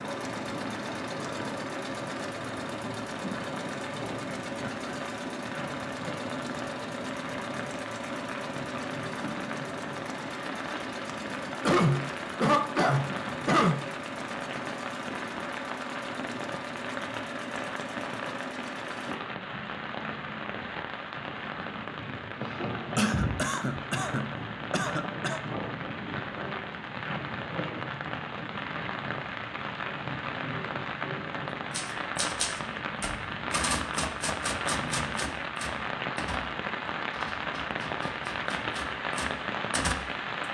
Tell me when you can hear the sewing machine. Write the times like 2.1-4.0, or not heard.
0.0-19.1.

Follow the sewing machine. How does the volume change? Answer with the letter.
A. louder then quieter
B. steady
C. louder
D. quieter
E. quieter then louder
B.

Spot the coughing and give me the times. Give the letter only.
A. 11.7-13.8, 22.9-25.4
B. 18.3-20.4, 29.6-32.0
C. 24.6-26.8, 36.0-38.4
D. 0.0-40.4
A.